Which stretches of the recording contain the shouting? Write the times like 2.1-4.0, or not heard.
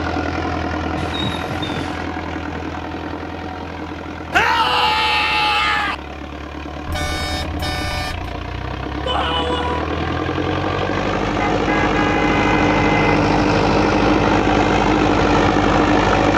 4.3-6.0, 9.1-9.8.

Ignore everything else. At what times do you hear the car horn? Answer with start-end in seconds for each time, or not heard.
0.9-2.0, 6.8-8.3, 11.4-13.0.